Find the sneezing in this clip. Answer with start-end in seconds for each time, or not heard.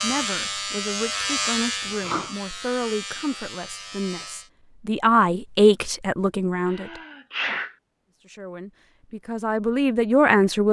1.9-2.4, 6.7-7.8.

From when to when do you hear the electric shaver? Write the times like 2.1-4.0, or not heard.
0.0-4.5.